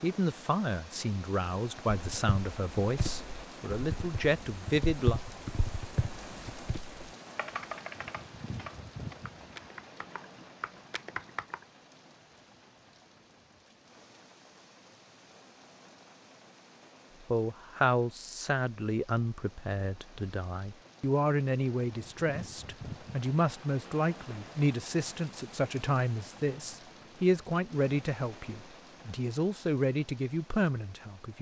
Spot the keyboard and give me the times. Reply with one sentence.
You can hear the keyboard from 1.9 to 11.7 s.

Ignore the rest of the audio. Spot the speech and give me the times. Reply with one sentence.
You can hear the speech from 0.0 to 5.2 s and from 17.2 to 31.3 s.